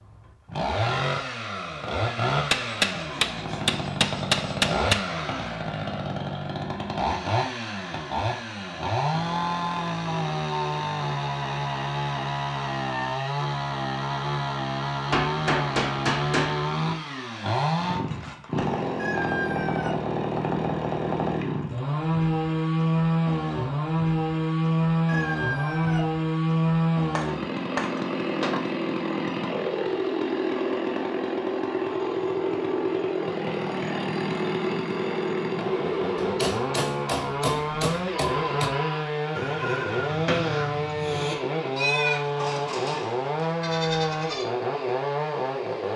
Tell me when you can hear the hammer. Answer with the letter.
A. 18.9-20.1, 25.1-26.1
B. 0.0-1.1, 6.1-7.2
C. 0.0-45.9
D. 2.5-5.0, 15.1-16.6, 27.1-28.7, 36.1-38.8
D.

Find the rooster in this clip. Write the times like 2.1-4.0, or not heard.
18.9-20.1, 25.1-26.1.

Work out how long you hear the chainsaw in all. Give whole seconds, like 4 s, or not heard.
46 s.